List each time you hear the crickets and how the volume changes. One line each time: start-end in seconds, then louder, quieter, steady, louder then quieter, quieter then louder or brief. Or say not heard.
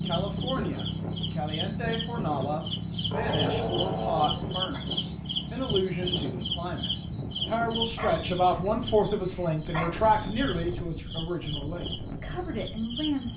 0.0-13.3 quieter.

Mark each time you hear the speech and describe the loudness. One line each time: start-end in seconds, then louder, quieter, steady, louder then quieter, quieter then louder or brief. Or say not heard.
0.0-13.3 louder then quieter.